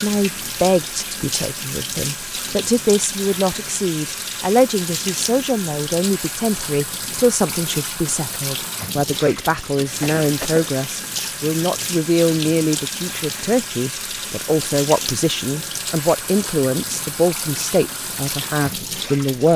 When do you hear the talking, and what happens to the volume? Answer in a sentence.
The talking can be heard from 0.0 to 19.5 s, at a steady volume.